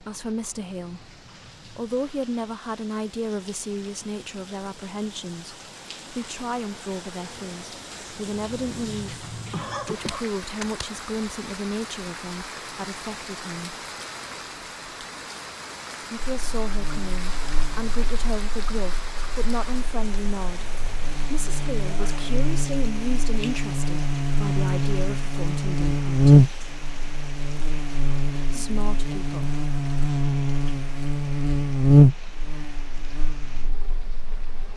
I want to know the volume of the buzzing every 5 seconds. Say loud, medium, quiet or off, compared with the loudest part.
off, off, off, quiet, medium, loud, loud.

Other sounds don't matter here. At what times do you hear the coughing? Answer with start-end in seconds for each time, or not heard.
9.5-10.2.